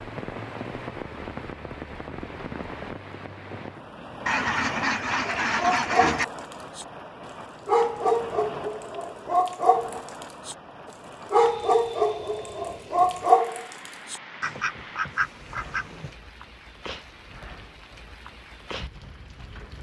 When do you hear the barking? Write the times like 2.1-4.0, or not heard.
5.2-6.8, 7.7-10.6, 11.3-14.2.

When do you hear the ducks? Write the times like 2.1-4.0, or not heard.
4.2-6.2, 14.4-16.1.